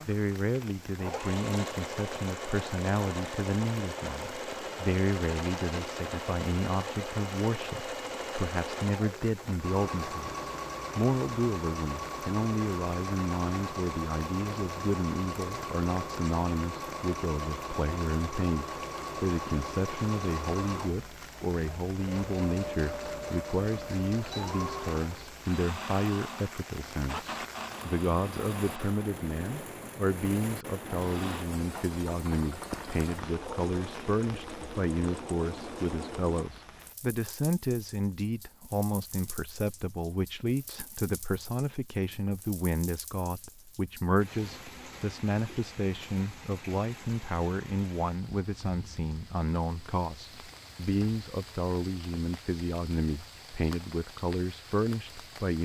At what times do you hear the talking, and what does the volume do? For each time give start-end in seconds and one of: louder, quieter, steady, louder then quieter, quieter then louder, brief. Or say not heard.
0.1-55.6 steady.